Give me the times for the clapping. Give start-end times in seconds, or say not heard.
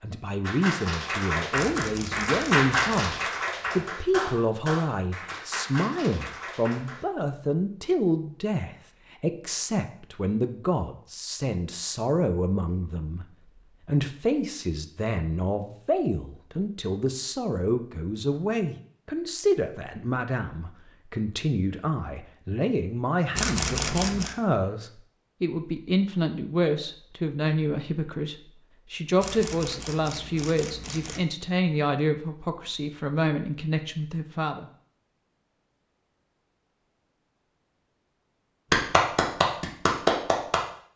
0.4-7.0, 38.7-40.6.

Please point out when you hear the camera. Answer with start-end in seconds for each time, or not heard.
1.5-3.1, 23.4-24.4, 29.2-31.2.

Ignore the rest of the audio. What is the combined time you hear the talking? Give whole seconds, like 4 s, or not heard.
35 s.